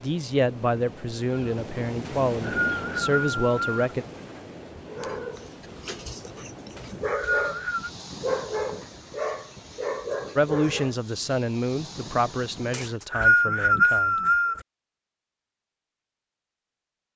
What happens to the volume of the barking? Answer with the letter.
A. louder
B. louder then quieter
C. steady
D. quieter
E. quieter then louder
A.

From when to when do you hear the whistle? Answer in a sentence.
The whistle can be heard from 2.0 to 3.8 s, from 6.8 to 7.9 s and from 12.7 to 14.6 s.